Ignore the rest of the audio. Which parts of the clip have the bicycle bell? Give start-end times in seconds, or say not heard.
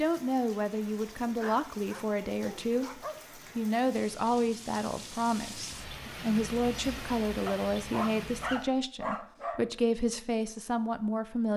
not heard.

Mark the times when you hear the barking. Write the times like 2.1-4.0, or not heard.
1.2-3.2, 7.5-9.7.